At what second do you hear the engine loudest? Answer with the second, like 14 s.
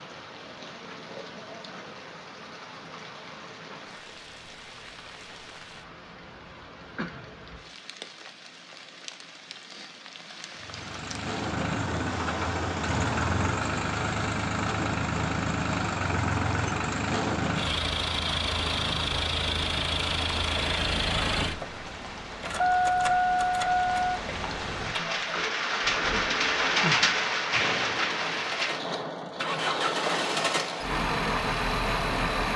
23 s.